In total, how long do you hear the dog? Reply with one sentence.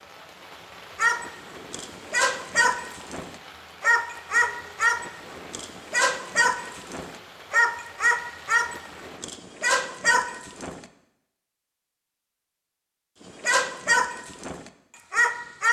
You can hear the dog for 12 seconds altogether.